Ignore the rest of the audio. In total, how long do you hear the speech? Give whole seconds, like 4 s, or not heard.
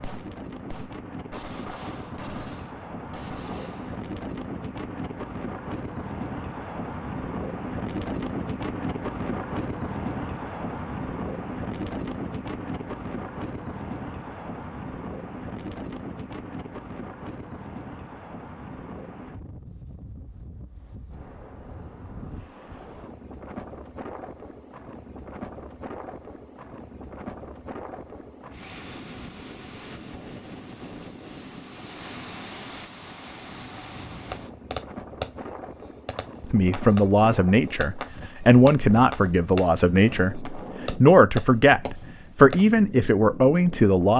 8 s.